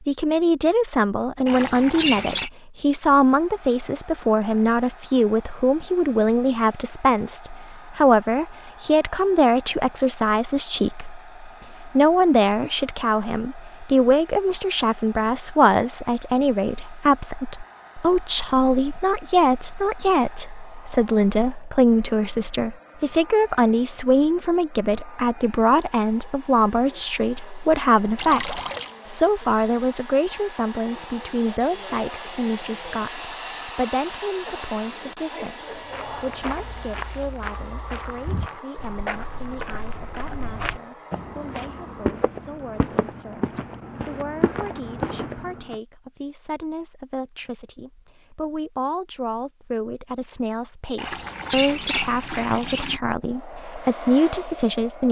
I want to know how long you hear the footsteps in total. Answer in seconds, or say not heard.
10 s.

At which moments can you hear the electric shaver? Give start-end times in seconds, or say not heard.
not heard.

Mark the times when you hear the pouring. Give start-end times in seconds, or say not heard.
1.4-2.5, 28.1-28.9, 51.0-53.0.